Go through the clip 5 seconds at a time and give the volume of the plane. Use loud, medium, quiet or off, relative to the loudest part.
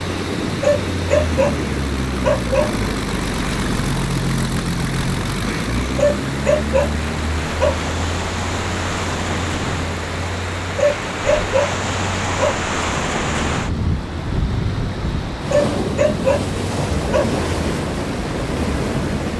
loud, loud, medium, medium.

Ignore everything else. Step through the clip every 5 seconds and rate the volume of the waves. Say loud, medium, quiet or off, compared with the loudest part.
medium, medium, loud, loud.